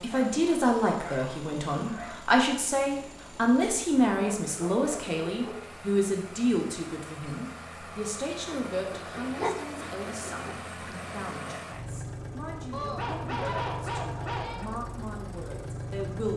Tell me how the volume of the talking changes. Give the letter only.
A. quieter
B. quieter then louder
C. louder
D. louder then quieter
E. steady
A.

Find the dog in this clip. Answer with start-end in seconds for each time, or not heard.
0.1-2.2, 4.2-5.7, 8.5-10.6, 12.7-14.7.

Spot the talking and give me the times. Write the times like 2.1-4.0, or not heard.
0.0-16.3.